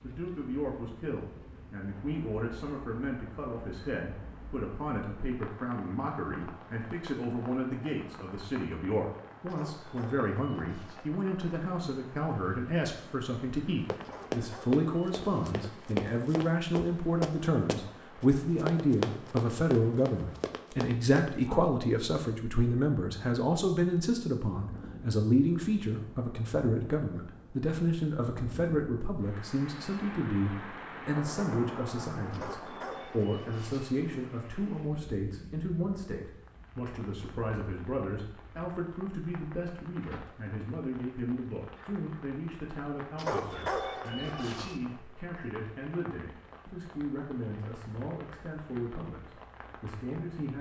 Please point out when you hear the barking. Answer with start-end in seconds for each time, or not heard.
9.4-11.1, 14.0-15.7, 32.3-34.0, 43.1-44.8.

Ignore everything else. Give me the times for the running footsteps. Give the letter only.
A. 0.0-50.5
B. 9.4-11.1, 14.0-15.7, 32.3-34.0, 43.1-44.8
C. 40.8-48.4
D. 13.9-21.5
D.